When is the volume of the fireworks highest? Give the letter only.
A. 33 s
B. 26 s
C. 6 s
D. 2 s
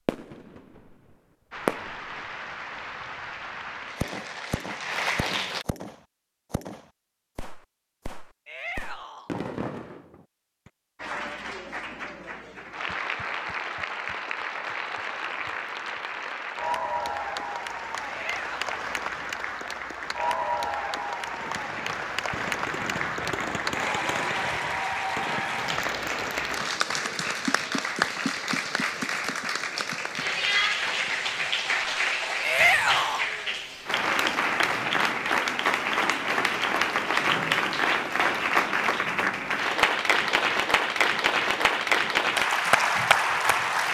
D.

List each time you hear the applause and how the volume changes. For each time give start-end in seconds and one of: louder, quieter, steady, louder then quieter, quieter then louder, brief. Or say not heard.
1.5-5.7 louder
10.9-43.8 louder.